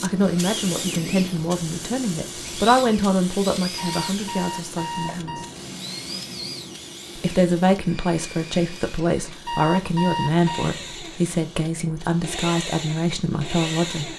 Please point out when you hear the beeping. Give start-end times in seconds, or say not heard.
3.8-5.5, 9.4-10.7.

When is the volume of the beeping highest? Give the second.
10 s.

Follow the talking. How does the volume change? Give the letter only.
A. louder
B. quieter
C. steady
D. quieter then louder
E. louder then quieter
C.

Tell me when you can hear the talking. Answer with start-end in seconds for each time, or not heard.
0.0-5.5, 7.2-14.1.